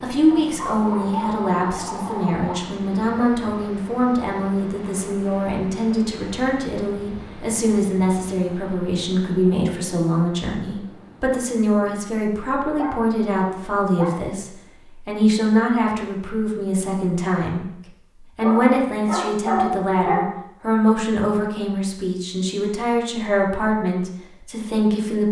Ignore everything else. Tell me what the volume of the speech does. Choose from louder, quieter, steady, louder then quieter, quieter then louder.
steady.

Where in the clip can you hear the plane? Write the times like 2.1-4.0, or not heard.
not heard.